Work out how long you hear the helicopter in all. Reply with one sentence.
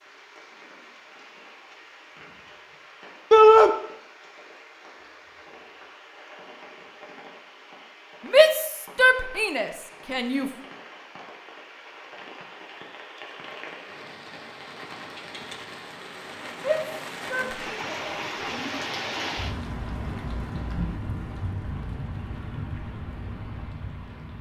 The helicopter can't be heard in this clip.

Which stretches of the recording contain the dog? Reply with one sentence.
The dog can't be heard in this clip.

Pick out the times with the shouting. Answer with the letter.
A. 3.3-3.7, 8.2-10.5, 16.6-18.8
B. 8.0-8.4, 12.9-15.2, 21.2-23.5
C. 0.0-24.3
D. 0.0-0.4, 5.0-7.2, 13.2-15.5
A.